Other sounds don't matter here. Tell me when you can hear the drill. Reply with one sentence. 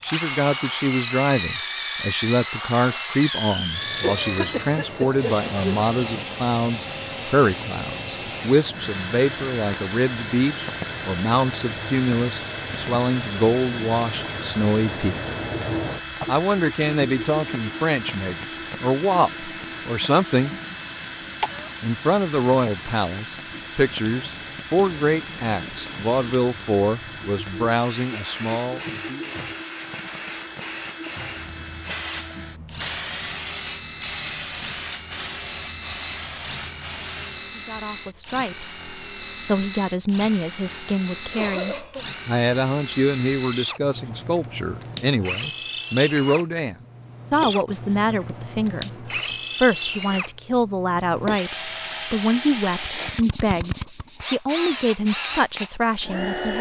The drill can be heard from 0.0 to 56.5 s.